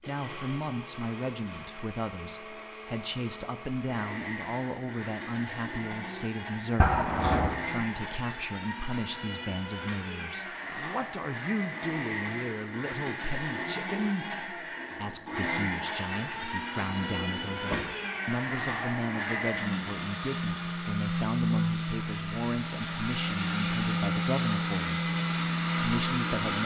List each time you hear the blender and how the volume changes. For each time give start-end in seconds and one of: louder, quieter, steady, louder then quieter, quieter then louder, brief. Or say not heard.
0.0-26.6 louder.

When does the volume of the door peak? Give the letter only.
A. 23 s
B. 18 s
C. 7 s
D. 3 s
C.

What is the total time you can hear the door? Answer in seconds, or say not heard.
2 s.